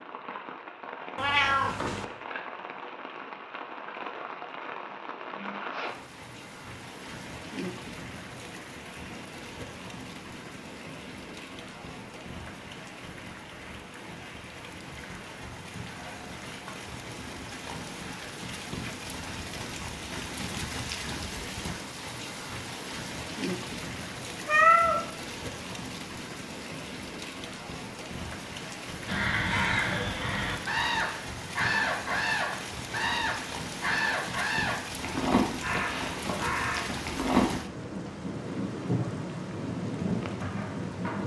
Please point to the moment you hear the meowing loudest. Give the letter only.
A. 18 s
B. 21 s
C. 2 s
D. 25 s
D.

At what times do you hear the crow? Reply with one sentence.
The crow can be heard from 29.1 to 37.5 s.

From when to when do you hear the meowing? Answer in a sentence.
You can hear the meowing from 1.1 to 2.0 s and from 24.4 to 25.0 s.